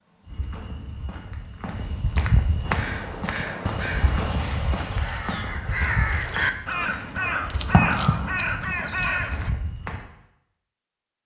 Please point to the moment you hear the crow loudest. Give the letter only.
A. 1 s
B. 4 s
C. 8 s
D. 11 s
C.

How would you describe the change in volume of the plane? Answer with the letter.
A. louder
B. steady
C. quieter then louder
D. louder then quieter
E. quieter
A.